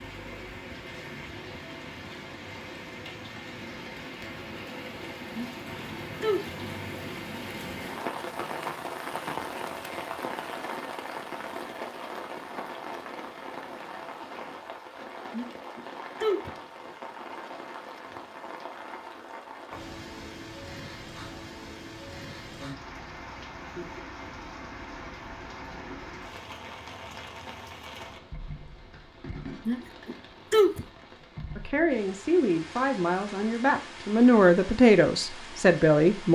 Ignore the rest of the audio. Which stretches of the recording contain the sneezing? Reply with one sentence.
The sneezing can be heard from 5.3 to 6.5 s, from 15.3 to 16.5 s and from 29.6 to 30.9 s.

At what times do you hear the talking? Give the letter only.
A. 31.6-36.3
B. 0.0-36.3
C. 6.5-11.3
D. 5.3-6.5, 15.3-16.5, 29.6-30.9
A.